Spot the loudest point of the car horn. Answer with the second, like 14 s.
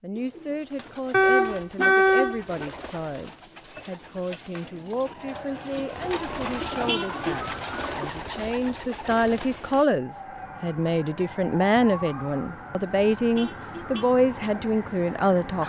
2 s.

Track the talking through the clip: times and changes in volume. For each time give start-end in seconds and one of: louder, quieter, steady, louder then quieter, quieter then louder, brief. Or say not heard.
0.0-15.6 louder.